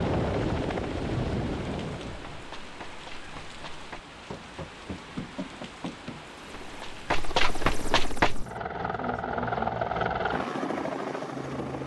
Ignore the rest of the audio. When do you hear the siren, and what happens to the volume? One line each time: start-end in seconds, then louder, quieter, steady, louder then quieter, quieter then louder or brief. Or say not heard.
not heard.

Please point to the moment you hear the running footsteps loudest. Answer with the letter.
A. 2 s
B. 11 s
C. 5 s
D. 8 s
D.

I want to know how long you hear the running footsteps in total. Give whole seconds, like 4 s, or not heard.
6 s.